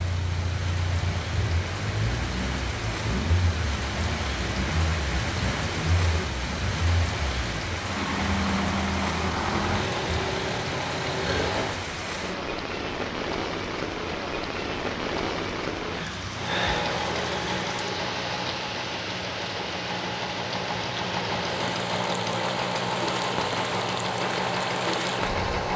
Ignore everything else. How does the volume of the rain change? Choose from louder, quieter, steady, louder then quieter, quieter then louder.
steady.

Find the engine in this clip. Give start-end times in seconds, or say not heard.
0.0-11.8, 16.3-25.7.